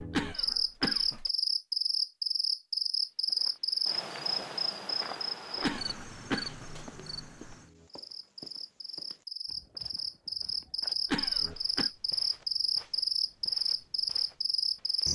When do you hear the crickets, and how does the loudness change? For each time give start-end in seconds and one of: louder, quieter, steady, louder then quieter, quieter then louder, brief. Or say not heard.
0.0-15.1 quieter then louder.